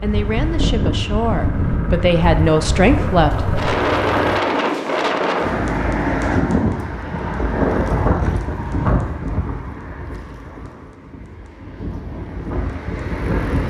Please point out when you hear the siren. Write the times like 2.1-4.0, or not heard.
not heard.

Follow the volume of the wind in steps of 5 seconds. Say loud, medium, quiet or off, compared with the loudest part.
loud, loud, medium.